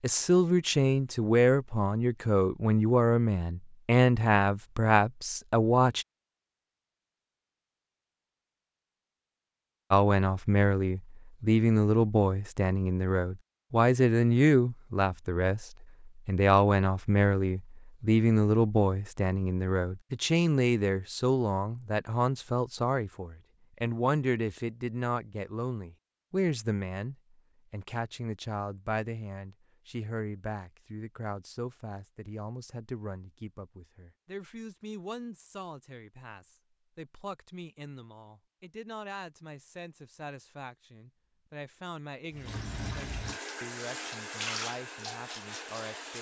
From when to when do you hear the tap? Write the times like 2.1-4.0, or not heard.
42.3-46.1.